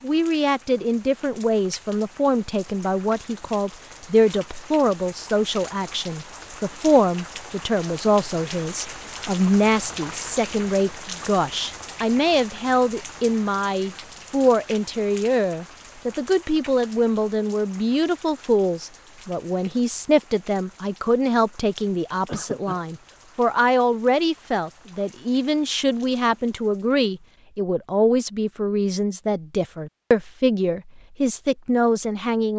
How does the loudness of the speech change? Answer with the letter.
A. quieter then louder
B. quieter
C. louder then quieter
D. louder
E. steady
E.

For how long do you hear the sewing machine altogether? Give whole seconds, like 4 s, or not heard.
not heard.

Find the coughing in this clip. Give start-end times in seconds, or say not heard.
22.2-22.9.